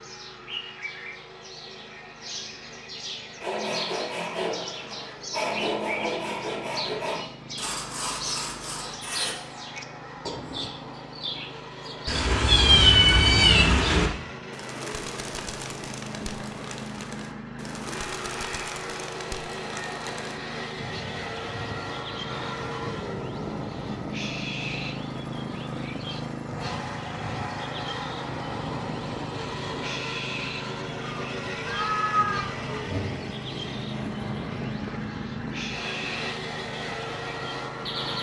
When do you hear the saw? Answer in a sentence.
The saw can be heard from 3.4 to 9.3 s.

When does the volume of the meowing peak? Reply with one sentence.
The loudest moment of the meowing is at 13 seconds.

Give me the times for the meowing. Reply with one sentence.
The meowing can be heard from 12.1 to 14.1 s and from 31.1 to 33.0 s.